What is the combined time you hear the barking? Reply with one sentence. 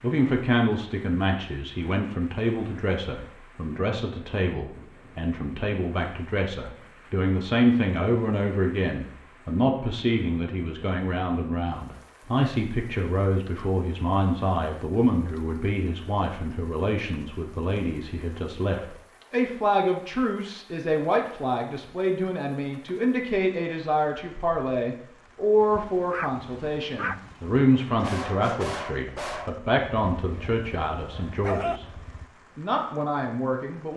The barking can be heard for 7 seconds in total.